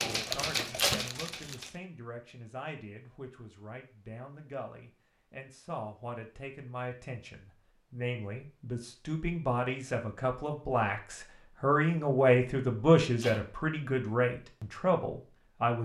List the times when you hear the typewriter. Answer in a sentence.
You can hear the typewriter from 0.0 to 1.8 s.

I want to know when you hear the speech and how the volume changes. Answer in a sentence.
The speech can be heard from 0.1 to 15.8 s, getting louder.